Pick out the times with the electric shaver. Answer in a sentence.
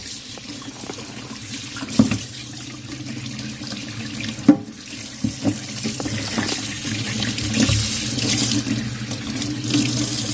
The electric shaver can't be heard in this clip.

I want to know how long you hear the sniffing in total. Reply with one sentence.
The sniffing can be heard for 2 seconds in total.